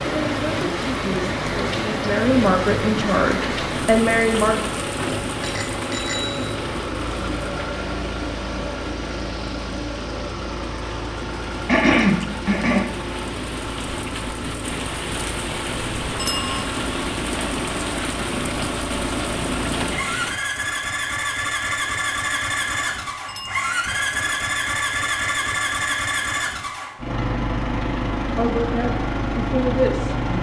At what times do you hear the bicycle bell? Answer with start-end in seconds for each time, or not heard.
5.4-6.5, 16.1-16.6, 23.2-23.8.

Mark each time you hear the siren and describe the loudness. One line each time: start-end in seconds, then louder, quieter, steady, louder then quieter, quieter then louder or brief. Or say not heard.
not heard.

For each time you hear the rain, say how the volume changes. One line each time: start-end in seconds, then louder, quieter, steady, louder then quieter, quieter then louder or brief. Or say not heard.
0.0-20.4 quieter then louder.